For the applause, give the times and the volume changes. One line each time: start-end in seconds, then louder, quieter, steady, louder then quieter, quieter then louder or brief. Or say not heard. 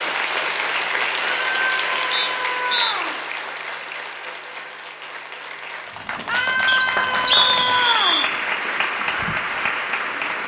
0.0-10.4 quieter then louder.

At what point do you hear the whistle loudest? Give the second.
7 s.